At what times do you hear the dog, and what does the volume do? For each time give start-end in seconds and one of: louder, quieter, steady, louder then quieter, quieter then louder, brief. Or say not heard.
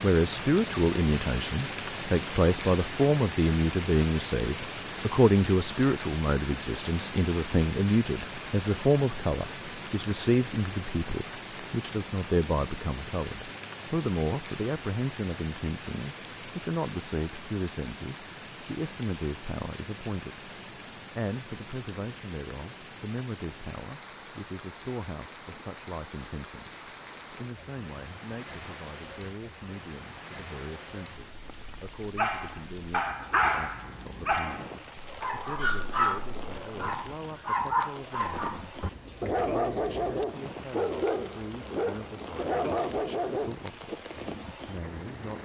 32.1-44.0 steady.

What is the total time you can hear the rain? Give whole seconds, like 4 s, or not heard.
45 s.